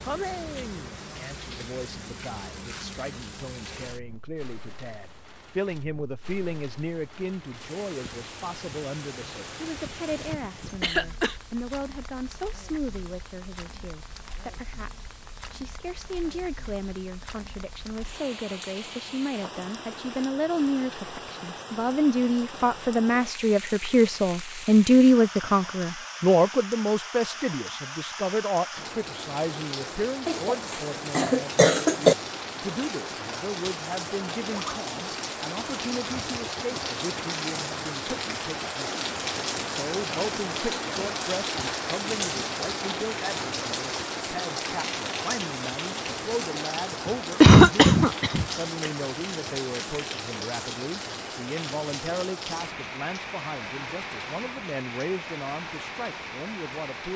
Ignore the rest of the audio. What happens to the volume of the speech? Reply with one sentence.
The volume of the speech goes up, then down.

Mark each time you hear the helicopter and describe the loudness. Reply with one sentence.
You can't hear the helicopter here.